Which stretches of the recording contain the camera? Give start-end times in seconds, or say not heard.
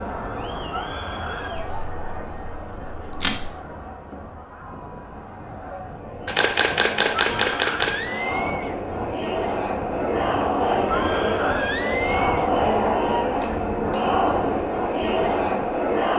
1.6-3.5, 6.2-8.0, 13.4-14.1.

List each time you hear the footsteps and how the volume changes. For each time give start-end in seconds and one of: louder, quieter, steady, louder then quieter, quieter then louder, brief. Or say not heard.
not heard.